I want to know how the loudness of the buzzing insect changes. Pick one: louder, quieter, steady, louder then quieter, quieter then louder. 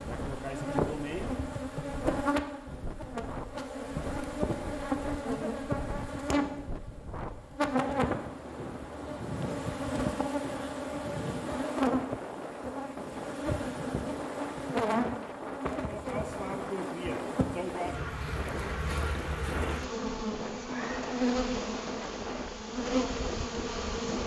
steady.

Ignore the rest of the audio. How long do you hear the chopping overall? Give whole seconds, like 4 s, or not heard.
not heard.